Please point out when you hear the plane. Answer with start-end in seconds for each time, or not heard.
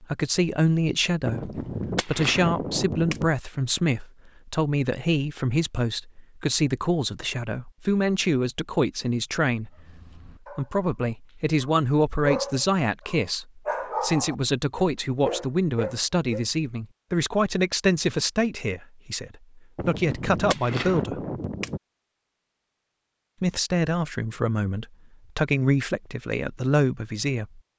not heard.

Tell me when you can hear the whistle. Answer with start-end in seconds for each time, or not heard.
not heard.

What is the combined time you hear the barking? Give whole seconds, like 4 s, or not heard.
7 s.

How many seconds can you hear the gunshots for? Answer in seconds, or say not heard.
4 s.